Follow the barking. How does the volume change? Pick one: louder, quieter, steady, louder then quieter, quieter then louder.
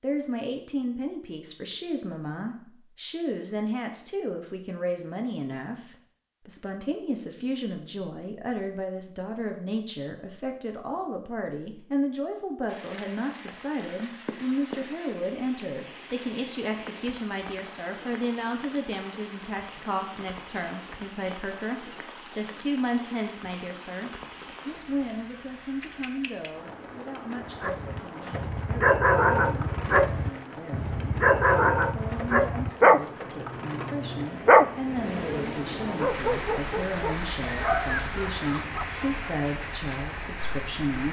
quieter.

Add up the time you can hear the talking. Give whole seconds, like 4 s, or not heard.
41 s.